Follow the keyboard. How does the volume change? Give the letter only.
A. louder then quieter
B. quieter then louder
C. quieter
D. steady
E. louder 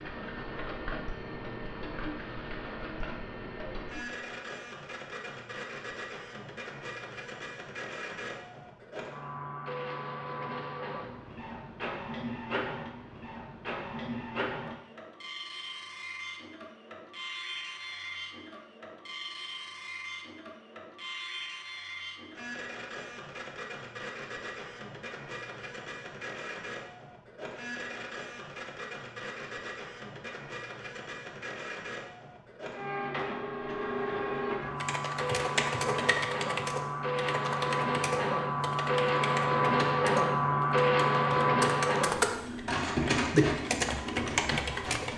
B.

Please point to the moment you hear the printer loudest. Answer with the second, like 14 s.
41 s.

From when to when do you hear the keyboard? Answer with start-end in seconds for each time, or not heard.
34.8-45.1.